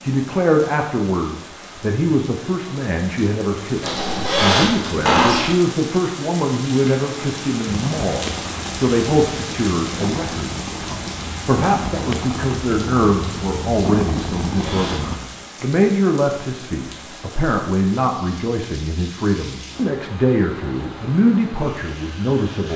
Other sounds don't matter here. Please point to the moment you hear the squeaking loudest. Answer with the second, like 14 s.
5 s.